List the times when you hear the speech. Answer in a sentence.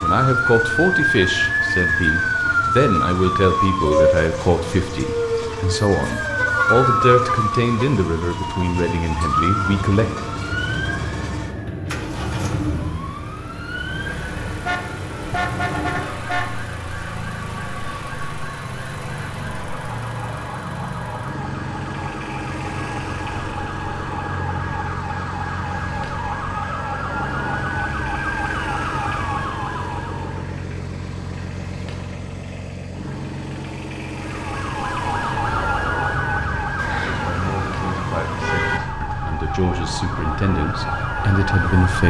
You can hear the speech from 0.0 to 10.1 s and from 37.2 to 42.0 s.